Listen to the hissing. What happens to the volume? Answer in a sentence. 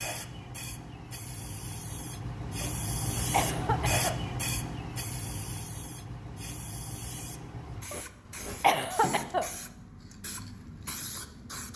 The volume of the hissing goes up, then down.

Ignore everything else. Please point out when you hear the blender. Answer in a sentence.
You can't hear the blender here.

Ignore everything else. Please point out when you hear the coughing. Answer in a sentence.
The coughing can be heard from 2.5 to 4.2 s and from 7.9 to 9.4 s.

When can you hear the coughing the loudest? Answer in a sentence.
The volume of the coughing peaks at 9 seconds.